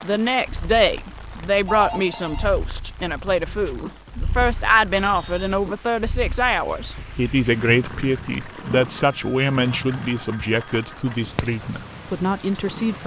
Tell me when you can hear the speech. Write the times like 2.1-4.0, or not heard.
0.0-13.0.